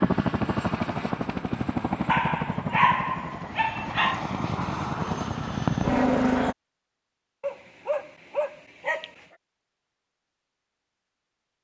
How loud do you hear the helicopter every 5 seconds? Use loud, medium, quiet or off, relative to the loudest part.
medium, loud, off.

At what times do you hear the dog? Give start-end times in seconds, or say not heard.
2.0-4.2, 7.4-9.2.